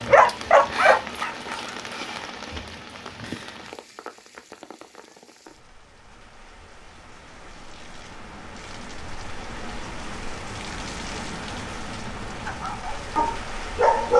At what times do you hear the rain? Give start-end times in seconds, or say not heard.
0.0-14.1.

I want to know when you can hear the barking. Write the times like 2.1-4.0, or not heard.
0.0-1.8, 12.4-14.1.